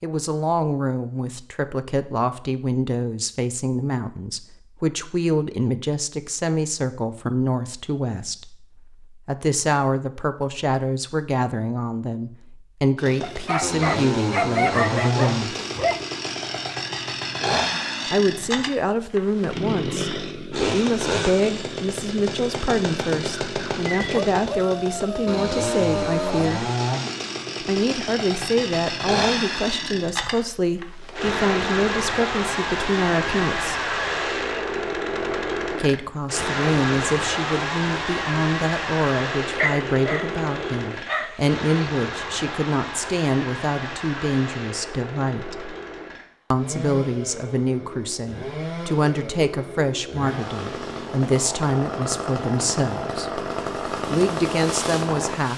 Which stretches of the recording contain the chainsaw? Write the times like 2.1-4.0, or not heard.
12.9-55.5.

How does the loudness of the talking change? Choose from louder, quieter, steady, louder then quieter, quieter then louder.
steady.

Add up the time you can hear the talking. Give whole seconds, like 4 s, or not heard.
49 s.